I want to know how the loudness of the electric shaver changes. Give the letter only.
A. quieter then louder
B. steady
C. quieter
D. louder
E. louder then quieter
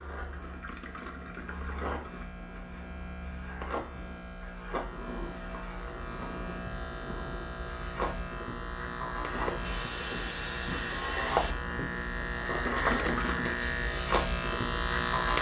D.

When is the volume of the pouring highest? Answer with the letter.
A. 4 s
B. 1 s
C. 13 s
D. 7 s
C.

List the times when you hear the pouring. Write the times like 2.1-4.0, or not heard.
0.4-2.3, 12.7-13.6.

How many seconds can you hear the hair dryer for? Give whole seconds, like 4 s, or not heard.
2 s.